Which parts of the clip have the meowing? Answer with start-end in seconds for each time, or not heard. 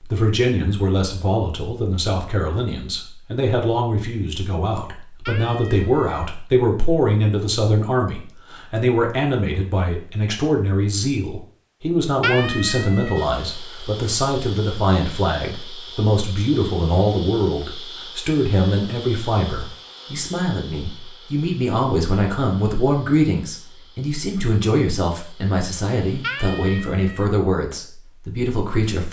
5.2-6.2, 12.2-13.2, 26.2-27.2.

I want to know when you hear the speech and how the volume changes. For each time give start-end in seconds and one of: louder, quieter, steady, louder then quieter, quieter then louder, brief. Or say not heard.
0.0-29.0 steady.